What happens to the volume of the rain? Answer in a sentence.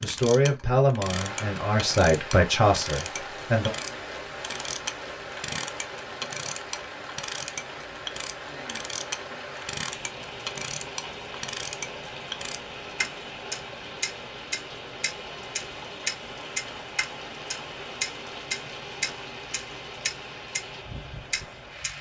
The loudness of the rain stays about the same.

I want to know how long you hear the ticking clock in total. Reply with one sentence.
You can hear the ticking clock for 21 seconds altogether.